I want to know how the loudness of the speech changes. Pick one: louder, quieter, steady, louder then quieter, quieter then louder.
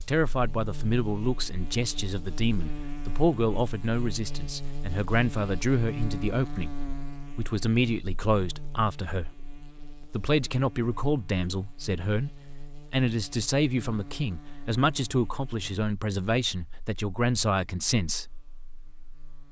steady.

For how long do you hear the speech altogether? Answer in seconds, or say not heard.
18 s.